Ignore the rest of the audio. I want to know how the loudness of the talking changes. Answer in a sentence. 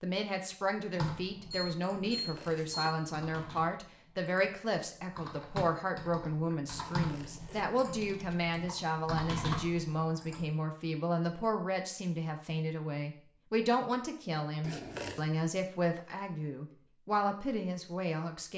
The volume of the talking stays about the same.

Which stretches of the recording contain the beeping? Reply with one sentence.
The beeping can be heard from 1.5 to 2.9 s.